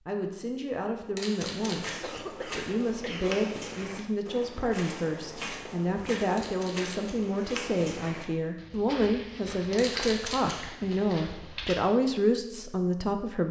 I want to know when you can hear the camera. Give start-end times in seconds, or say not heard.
1.1-1.9, 6.3-7.2, 9.8-10.6.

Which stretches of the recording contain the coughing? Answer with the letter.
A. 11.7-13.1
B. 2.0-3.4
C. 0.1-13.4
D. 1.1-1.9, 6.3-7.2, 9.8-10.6
B.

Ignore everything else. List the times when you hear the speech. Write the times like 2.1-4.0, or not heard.
0.1-13.4.